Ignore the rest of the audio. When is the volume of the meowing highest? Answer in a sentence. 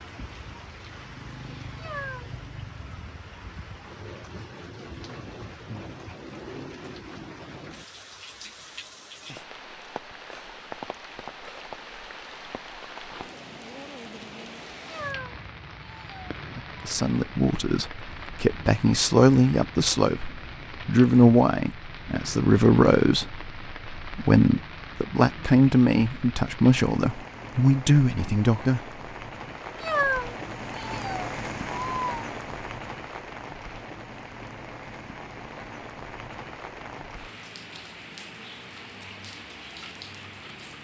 The volume of the meowing peaks at 30 seconds.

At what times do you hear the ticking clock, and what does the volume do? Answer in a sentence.
You can't hear the ticking clock here.